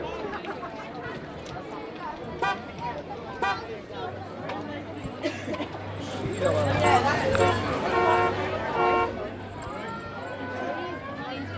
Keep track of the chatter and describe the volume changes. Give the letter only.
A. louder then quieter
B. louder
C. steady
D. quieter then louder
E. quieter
A.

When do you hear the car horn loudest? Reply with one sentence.
The loudest moment of the car horn is at 8 seconds.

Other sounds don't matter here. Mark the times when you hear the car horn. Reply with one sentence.
The car horn can be heard from 2.2 to 3.6 s and from 6.8 to 9.2 s.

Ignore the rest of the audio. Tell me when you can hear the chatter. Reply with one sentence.
You can hear the chatter from 0.0 to 11.5 s.